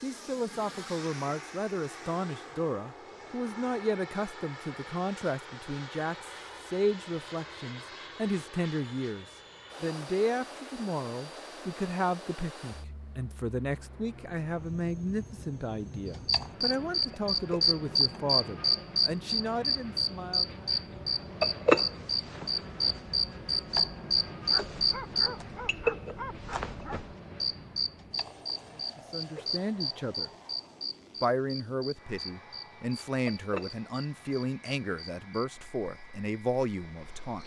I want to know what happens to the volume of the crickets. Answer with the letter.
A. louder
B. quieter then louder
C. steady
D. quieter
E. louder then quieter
D.